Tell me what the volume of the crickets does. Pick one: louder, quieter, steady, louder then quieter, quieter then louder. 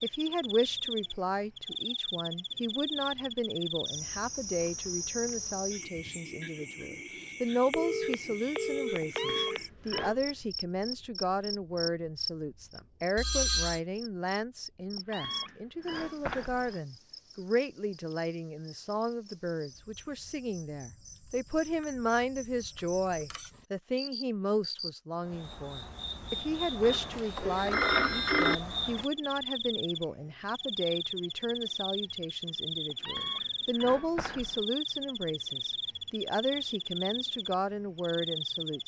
quieter then louder.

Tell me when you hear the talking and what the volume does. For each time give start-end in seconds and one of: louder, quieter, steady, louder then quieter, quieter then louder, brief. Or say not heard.
0.0-38.8 steady.